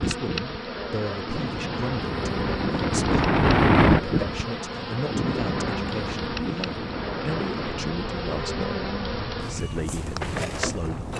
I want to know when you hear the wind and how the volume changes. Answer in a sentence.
The wind can be heard from 0.0 to 11.1 s, getting louder then quieter.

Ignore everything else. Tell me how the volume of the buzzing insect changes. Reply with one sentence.
The loudness of the buzzing insect stays about the same.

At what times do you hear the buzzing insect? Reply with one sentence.
You can hear the buzzing insect from 0.0 to 11.1 s.